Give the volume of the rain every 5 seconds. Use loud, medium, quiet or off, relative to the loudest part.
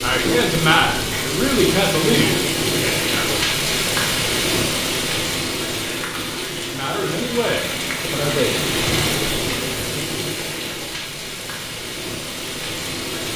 loud, loud, medium.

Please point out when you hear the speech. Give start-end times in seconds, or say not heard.
0.0-3.5, 6.6-8.8.